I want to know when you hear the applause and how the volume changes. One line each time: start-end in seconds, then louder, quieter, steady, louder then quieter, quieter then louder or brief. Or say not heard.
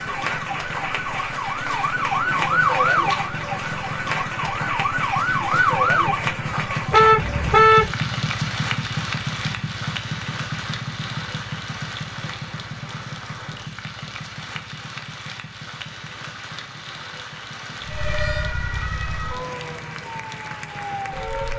0.0-21.5 quieter.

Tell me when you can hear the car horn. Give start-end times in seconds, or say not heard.
6.9-8.0.